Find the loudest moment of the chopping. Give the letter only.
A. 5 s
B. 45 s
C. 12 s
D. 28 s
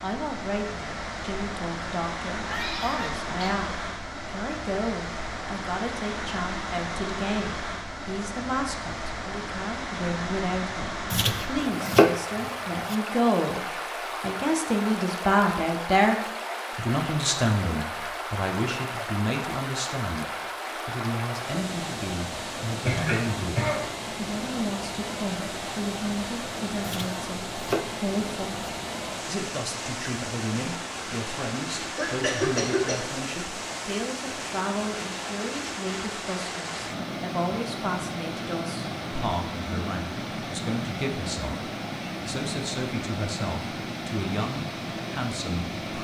C.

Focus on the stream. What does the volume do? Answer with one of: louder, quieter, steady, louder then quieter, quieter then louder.
steady.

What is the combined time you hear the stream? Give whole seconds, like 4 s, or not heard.
46 s.